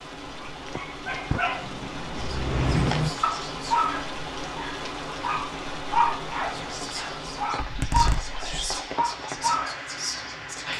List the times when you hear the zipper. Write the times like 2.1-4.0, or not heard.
7.5-8.7.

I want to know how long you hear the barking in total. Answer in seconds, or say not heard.
10 s.